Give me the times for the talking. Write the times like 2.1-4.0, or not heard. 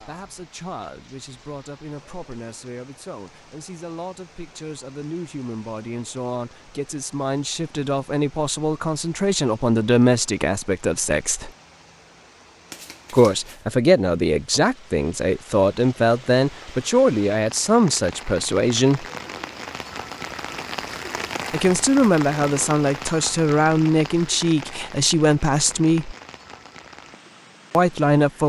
0.0-11.5, 13.1-19.1, 21.5-26.1, 27.7-28.4.